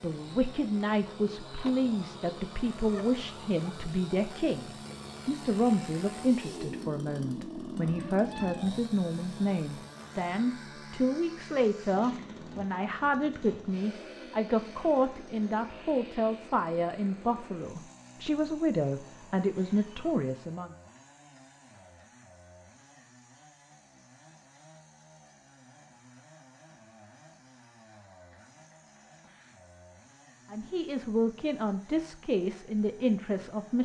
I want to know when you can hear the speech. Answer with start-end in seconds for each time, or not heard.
0.0-20.8, 30.5-33.8.